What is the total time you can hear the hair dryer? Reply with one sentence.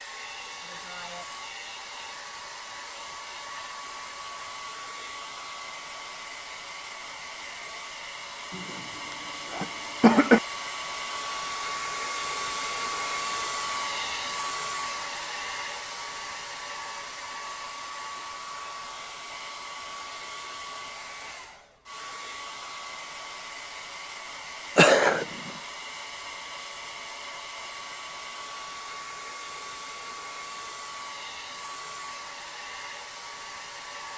You can hear the hair dryer for 34 seconds altogether.